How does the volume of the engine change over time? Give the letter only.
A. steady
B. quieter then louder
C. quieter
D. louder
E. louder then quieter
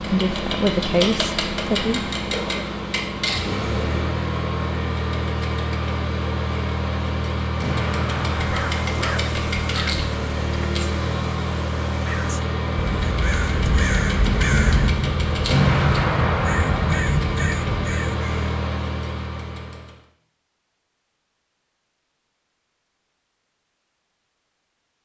A.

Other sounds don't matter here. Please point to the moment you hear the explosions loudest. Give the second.
16 s.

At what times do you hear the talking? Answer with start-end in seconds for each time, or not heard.
0.0-2.6.